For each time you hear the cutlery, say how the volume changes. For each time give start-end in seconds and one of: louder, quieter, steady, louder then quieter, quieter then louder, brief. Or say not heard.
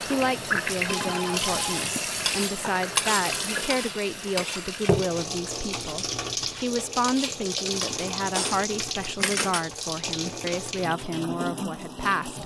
2.2-9.7 quieter then louder.